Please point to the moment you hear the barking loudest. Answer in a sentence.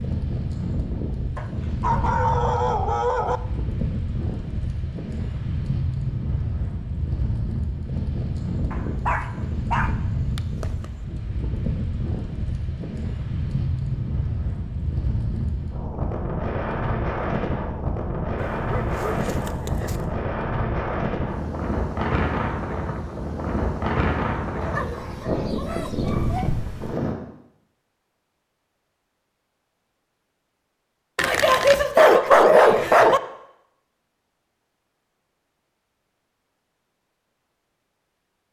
The volume of the barking peaks at 32 seconds.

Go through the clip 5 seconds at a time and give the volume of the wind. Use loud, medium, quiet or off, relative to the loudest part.
loud, loud, loud, loud, loud, loud, off, off.